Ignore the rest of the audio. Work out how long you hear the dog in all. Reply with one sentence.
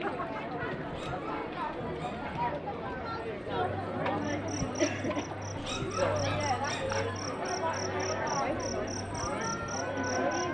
You can hear the dog for 3 seconds altogether.